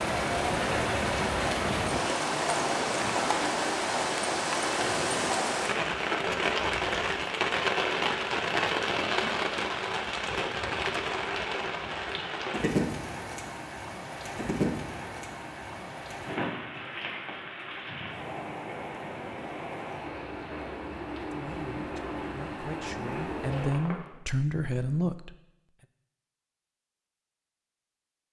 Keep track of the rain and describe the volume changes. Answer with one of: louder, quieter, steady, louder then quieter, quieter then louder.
quieter.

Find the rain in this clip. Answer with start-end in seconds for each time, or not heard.
0.0-24.1.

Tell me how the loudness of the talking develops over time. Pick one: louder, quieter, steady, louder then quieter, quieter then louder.
louder.